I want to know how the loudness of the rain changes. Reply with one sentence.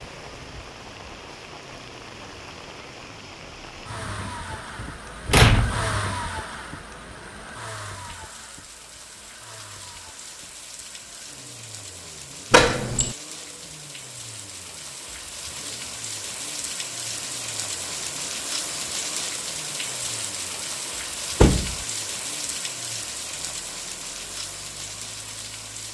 The volume of the rain goes up.